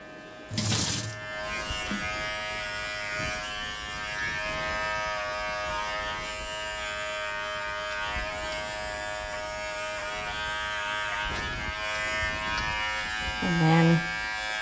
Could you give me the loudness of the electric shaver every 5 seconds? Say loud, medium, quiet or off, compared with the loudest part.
medium, medium, loud.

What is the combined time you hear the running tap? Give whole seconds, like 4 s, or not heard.
2 s.